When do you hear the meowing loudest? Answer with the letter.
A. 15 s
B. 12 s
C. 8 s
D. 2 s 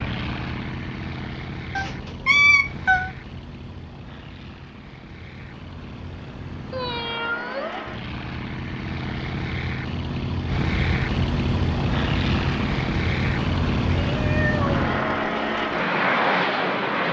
D.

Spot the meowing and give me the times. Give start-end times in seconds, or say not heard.
1.8-3.1, 6.7-7.8, 13.9-14.8.